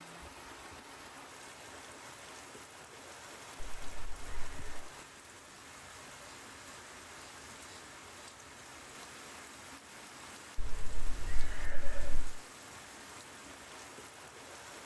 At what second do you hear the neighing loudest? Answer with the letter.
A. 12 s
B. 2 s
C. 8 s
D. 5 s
A.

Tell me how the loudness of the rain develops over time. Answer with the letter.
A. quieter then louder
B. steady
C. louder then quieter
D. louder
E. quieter
B.